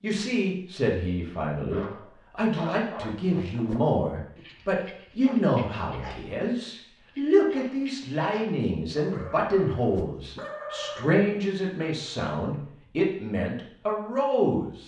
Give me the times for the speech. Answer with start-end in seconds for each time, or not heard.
0.0-14.8.